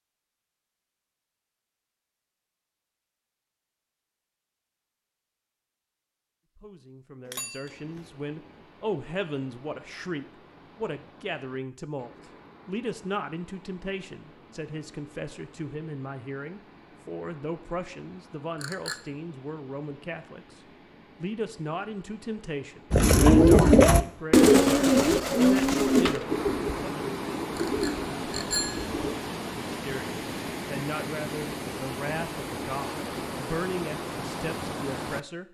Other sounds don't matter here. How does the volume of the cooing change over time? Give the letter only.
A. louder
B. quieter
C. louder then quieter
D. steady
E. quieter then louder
B.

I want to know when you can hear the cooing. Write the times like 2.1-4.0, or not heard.
22.9-29.1.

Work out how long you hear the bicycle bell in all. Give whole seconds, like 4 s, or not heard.
3 s.